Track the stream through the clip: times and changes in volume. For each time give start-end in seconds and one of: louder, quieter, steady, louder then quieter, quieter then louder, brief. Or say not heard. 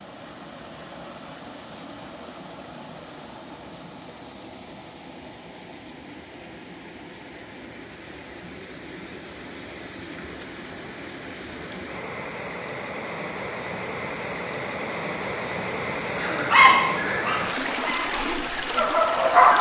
0.0-19.5 louder.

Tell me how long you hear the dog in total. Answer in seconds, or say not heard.
3 s.